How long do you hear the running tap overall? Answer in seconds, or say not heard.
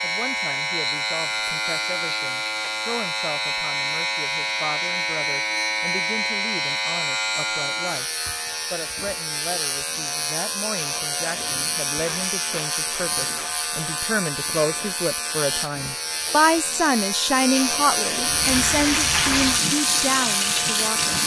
3 s.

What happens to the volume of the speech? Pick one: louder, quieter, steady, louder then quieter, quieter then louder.
louder.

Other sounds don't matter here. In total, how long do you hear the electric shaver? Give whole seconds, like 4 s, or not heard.
21 s.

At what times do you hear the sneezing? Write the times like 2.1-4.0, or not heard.
not heard.